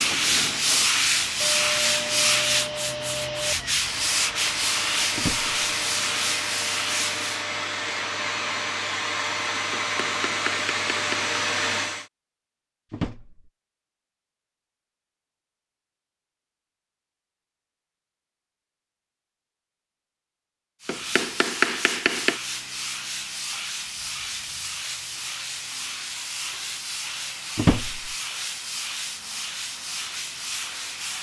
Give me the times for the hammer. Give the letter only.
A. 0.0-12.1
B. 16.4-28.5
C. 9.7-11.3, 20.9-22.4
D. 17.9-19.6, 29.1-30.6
C.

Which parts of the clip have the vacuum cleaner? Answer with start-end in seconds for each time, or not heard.
0.0-12.1.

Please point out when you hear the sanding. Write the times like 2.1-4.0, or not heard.
0.0-7.5, 20.8-31.1.